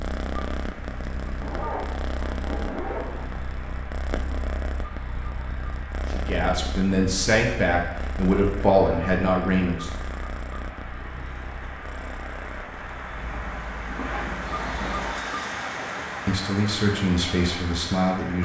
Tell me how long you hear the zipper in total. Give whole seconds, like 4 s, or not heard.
4 s.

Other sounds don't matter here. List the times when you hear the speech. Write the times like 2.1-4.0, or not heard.
6.1-9.9, 16.2-18.3.